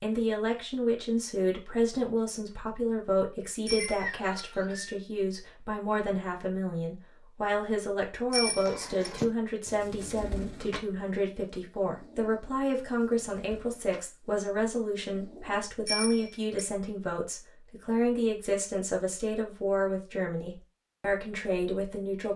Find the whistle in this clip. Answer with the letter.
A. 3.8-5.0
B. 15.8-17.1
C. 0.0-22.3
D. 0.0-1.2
A.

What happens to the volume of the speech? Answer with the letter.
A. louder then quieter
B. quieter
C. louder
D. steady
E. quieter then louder
D.